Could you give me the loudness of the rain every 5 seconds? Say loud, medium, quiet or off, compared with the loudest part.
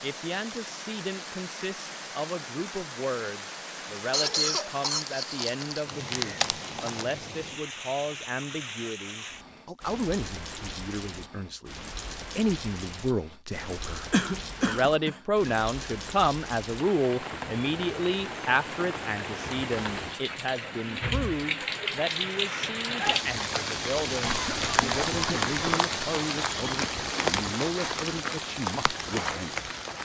medium, medium, medium, medium, loud, loud.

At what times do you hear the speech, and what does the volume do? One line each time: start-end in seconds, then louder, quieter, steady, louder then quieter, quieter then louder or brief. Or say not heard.
0.0-29.7 louder then quieter.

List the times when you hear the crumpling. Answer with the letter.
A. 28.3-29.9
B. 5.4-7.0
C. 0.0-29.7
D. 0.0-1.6
B.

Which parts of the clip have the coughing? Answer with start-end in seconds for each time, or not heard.
4.1-5.8, 14.1-15.5, 24.2-25.6.